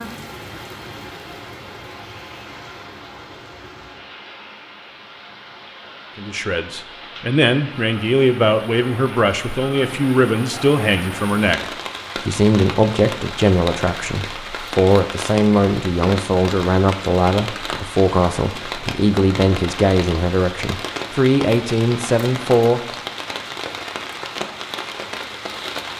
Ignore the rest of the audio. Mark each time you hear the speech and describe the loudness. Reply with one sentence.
The speech can be heard from 6.2 to 22.8 s, at a steady volume.